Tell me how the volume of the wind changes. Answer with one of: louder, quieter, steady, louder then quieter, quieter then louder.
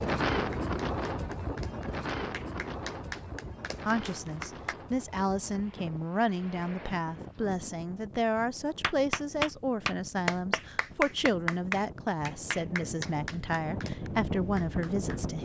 quieter then louder.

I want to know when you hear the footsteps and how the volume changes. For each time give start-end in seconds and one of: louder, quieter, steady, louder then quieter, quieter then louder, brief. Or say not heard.
not heard.